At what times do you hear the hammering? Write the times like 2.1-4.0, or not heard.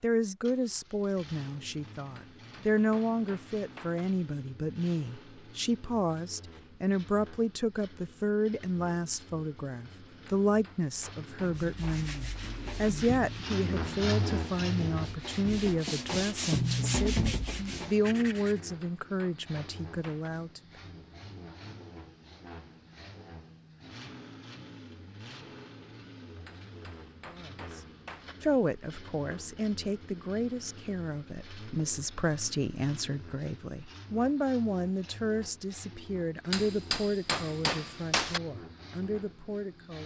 2.1-4.0, 10.2-12.1, 18.6-20.3, 26.4-28.4, 36.5-38.4.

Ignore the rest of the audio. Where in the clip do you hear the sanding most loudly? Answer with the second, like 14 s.
17 s.